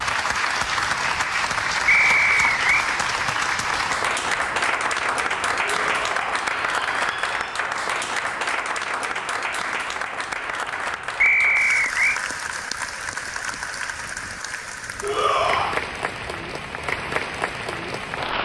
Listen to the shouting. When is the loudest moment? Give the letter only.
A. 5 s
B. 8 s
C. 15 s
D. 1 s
C.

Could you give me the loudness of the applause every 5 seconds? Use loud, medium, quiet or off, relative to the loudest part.
loud, loud, medium, medium.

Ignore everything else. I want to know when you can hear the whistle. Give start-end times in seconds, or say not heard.
1.9-2.8, 11.2-12.2.